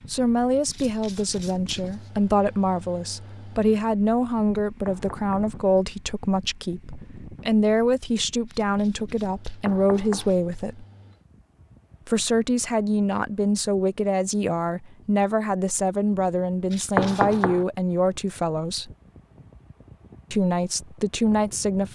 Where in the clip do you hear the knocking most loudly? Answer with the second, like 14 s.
17 s.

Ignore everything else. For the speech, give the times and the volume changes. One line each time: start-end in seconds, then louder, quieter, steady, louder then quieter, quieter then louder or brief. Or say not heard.
0.1-10.8 steady
12.1-18.9 steady
20.3-21.9 brief.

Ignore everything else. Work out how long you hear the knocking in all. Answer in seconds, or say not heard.
2 s.